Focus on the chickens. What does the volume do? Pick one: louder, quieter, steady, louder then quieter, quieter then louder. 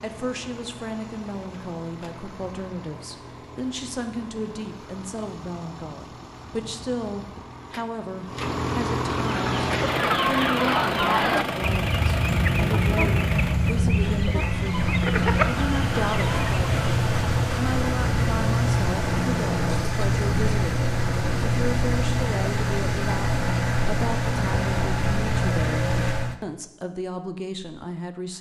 steady.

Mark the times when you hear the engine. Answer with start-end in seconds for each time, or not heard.
0.0-26.4.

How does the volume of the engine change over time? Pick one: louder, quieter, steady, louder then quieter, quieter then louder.
louder.